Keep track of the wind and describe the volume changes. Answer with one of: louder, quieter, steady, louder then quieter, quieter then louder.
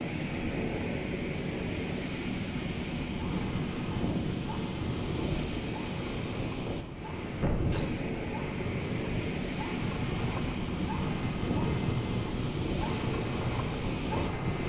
steady.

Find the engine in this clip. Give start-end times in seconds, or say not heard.
3.1-14.6.